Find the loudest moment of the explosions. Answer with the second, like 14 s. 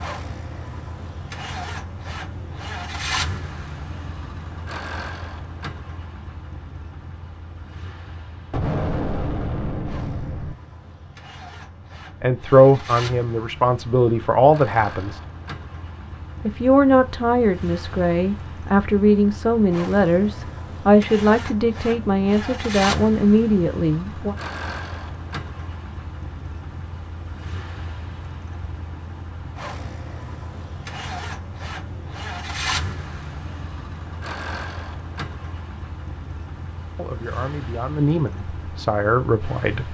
9 s.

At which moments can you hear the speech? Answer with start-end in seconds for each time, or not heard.
12.2-15.2, 16.4-24.4, 37.0-39.8.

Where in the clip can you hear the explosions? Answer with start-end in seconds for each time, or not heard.
8.5-10.6.